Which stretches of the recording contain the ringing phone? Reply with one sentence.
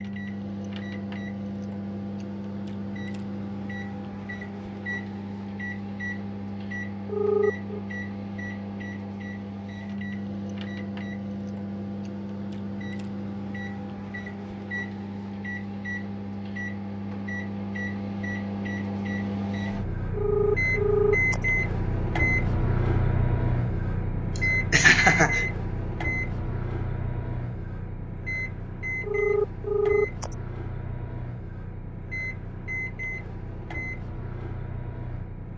You can hear the ringing phone from 7.0 to 7.8 s, from 20.1 to 21.4 s and from 29.0 to 30.3 s.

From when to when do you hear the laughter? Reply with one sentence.
The laughter can be heard from 24.4 to 25.4 s.